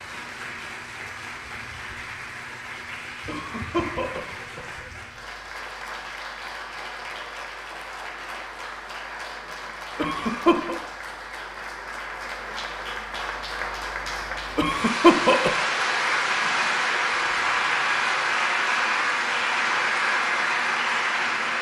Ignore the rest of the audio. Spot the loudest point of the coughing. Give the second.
15 s.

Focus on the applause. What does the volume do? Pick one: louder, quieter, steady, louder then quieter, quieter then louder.
louder.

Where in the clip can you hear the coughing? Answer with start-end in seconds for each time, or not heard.
3.2-4.8, 9.9-10.8, 14.6-15.6.